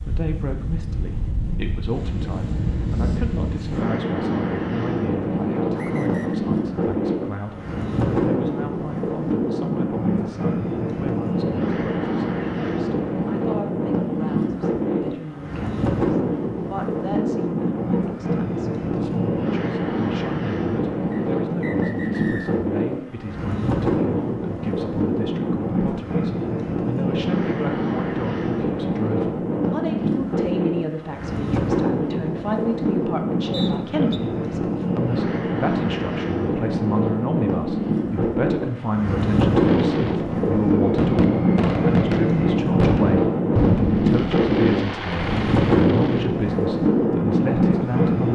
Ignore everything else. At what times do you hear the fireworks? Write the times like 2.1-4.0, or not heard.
39.6-46.4.